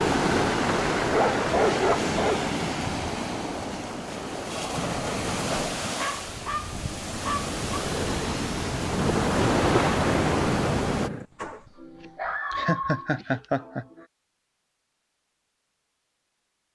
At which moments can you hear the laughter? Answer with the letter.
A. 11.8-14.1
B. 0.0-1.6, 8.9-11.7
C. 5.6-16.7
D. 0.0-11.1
A.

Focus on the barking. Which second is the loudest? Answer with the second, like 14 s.
2 s.